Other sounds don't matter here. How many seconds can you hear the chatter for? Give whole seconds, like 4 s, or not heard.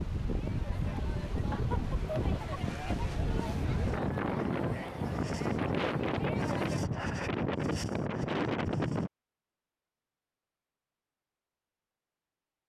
7 s.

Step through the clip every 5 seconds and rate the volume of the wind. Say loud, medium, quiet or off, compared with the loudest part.
loud, loud, off.